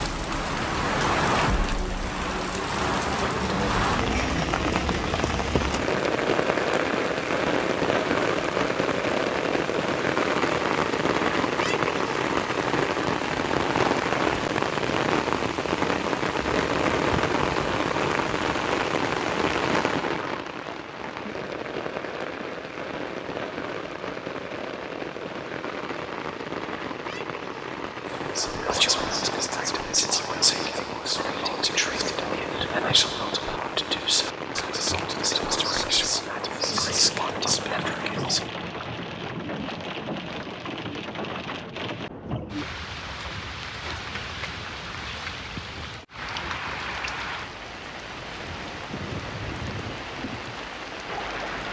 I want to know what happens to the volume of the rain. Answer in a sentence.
The volume of the rain goes down.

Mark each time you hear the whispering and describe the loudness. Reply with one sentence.
You can hear the whispering from 28.1 to 38.5 s, at a steady volume.